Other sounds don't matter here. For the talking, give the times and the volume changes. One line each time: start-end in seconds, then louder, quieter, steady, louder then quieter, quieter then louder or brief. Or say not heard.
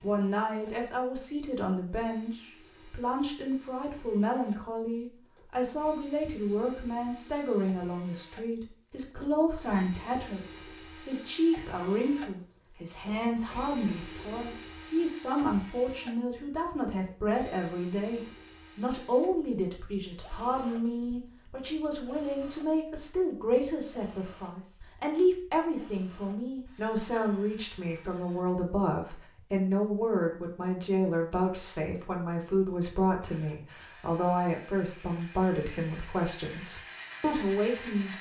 0.0-38.1 steady.